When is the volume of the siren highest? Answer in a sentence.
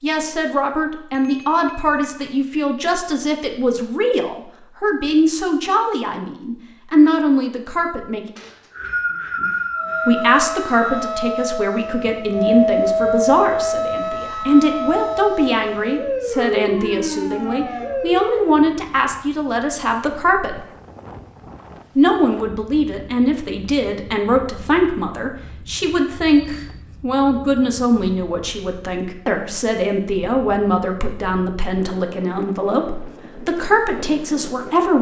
The volume of the siren peaks at 13 seconds.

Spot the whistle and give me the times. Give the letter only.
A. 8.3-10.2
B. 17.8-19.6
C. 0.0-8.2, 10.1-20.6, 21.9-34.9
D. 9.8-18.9
A.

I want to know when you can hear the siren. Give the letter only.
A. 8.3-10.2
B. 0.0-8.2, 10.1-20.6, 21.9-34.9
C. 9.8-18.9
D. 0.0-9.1
C.